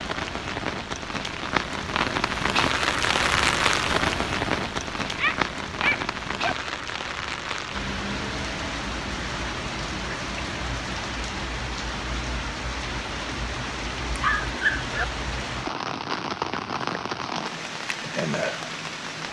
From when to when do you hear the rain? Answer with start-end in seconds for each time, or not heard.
0.0-19.2.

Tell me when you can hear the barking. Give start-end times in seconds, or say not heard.
5.0-6.5, 14.2-15.1.